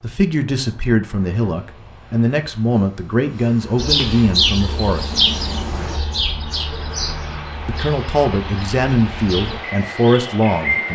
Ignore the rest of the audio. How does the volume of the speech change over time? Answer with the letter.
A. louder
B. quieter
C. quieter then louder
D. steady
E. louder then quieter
D.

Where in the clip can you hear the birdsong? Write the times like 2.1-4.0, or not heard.
3.8-10.8.